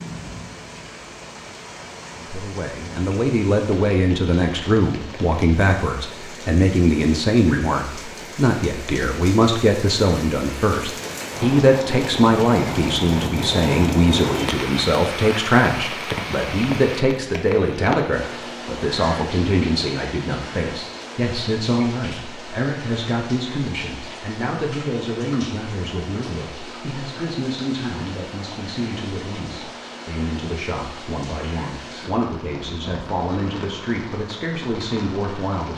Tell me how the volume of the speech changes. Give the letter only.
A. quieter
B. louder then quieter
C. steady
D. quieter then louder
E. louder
A.